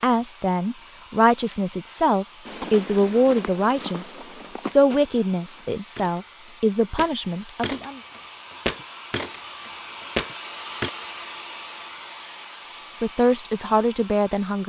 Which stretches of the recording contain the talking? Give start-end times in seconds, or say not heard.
0.0-8.0, 13.0-14.6.